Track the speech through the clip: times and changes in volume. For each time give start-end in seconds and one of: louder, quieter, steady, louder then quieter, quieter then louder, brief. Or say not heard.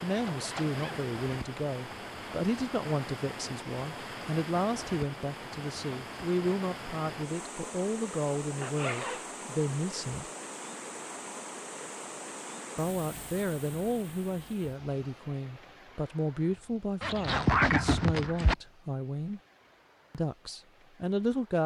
0.0-10.3 steady
12.8-19.4 steady
20.1-21.6 brief.